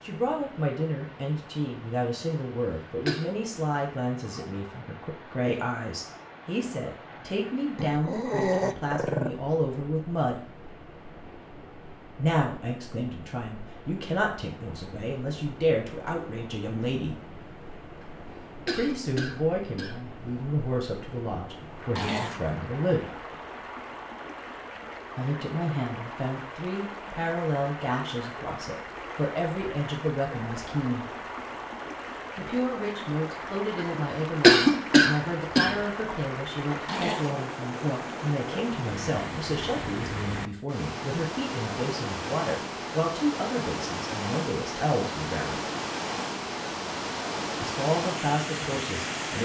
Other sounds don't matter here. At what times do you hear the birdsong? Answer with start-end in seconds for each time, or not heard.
not heard.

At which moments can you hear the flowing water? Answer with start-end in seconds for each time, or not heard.
0.0-49.3.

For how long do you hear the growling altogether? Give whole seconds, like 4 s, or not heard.
3 s.